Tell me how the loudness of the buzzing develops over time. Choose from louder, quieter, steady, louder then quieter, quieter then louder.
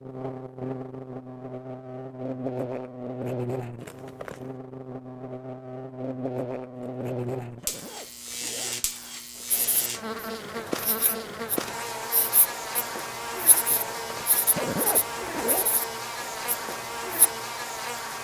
steady.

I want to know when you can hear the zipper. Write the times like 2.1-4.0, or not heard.
3.8-4.5, 6.8-8.8, 13.7-15.8.